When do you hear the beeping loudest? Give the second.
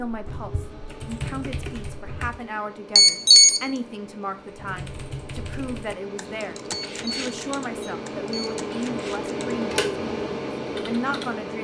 3 s.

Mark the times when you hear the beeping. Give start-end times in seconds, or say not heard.
3.0-3.6, 6.7-8.6.